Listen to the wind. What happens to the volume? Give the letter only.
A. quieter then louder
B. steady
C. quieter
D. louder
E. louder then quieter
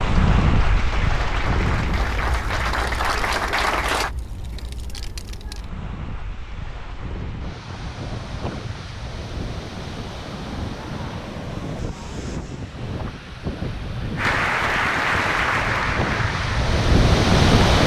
A.